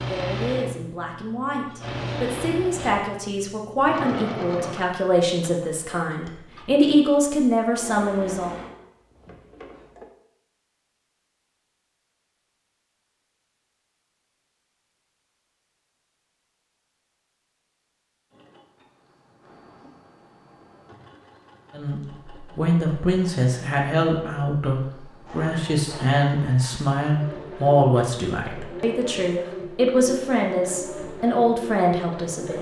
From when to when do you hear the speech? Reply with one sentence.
You can hear the speech from 0.0 to 8.6 s and from 21.8 to 32.5 s.